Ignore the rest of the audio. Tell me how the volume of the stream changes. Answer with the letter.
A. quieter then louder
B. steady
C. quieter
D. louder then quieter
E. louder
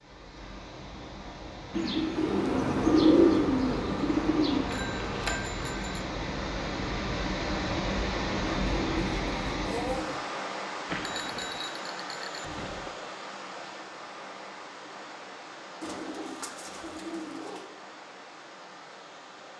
D.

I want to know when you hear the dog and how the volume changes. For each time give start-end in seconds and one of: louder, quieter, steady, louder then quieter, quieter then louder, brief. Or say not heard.
not heard.